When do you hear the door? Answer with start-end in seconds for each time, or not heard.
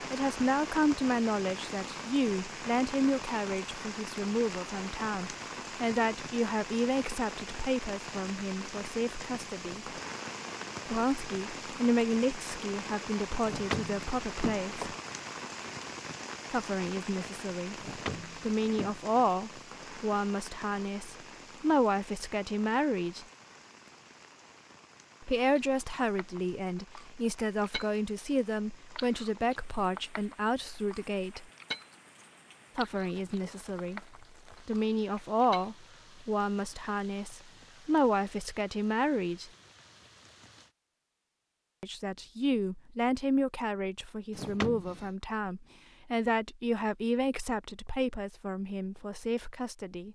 13.4-14.9, 17.8-19.1, 44.3-45.1.